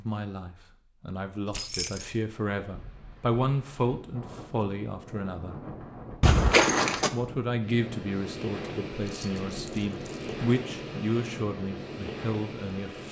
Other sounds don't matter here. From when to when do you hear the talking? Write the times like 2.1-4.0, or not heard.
0.0-5.6, 7.1-13.0.